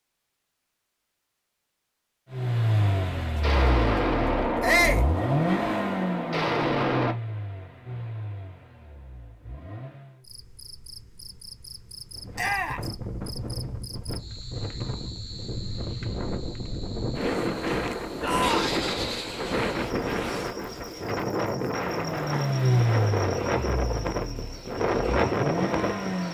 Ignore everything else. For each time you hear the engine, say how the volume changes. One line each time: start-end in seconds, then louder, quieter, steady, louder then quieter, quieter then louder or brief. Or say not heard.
2.3-10.2 quieter
21.8-26.2 quieter then louder.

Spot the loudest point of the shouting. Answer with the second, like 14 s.
5 s.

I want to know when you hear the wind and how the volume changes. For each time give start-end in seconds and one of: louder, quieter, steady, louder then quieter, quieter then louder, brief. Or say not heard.
12.2-26.2 louder.